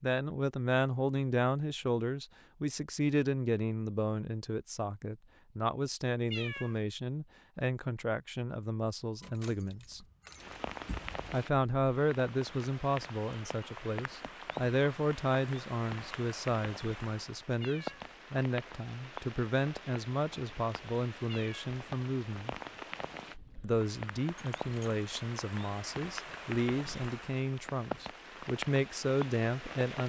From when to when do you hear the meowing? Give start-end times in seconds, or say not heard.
6.3-6.8, 17.6-18.1, 21.2-21.7.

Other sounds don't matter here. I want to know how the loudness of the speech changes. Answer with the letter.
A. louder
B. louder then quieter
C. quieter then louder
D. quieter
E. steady
E.